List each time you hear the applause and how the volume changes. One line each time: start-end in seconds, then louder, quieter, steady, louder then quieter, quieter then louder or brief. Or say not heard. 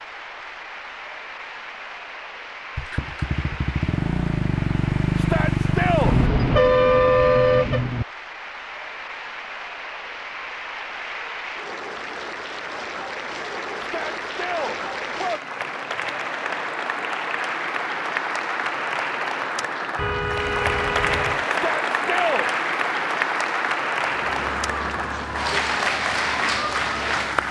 0.0-27.4 louder.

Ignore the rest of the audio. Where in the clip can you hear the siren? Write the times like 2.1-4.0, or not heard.
24.0-27.4.